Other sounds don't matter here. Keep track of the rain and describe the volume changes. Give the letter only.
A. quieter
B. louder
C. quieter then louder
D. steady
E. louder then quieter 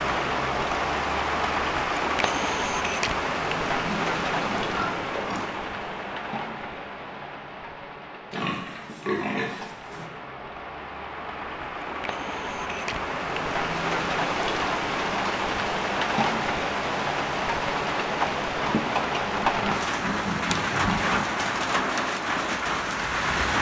C.